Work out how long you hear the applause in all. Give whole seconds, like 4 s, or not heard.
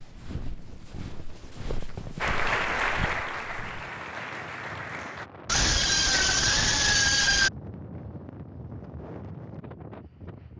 3 s.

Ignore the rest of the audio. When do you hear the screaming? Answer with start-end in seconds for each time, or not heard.
5.5-7.5.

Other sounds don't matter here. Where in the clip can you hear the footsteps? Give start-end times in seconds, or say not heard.
0.0-3.9.